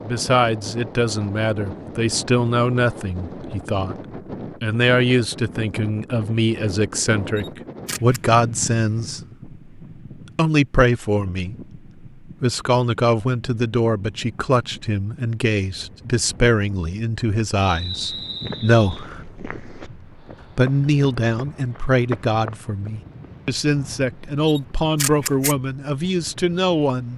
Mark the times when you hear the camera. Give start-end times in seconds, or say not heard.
7.3-8.2, 24.4-25.6.